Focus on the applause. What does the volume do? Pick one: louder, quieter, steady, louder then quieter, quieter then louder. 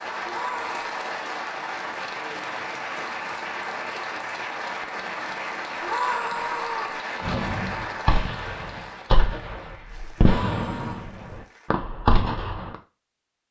quieter.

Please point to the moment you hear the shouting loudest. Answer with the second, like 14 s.
6 s.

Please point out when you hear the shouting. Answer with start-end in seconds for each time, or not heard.
0.2-0.9, 5.8-7.0, 10.2-11.1.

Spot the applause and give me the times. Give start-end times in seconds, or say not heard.
0.0-11.7.